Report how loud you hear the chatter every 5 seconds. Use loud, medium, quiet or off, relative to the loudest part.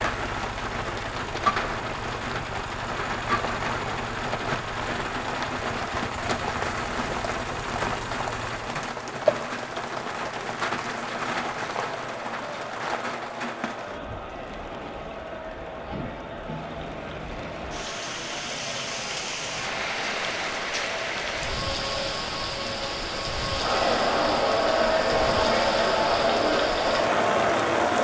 off, off, quiet, quiet, medium, loud.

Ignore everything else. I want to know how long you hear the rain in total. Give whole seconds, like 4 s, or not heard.
28 s.